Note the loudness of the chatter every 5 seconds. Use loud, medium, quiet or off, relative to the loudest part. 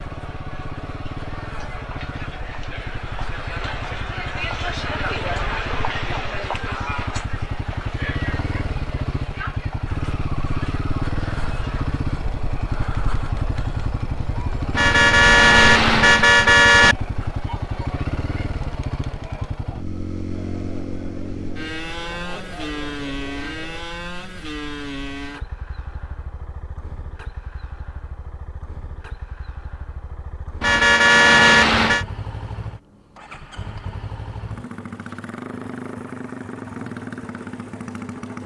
loud, loud, medium, medium, medium, off, off, off.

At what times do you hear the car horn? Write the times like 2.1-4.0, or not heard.
14.7-16.9, 30.6-32.0.